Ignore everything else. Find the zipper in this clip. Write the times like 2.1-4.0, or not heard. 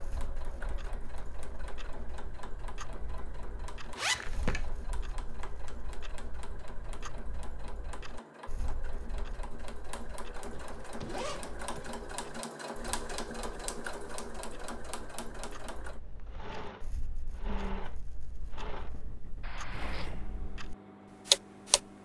4.0-4.7, 10.5-11.9, 19.4-20.1.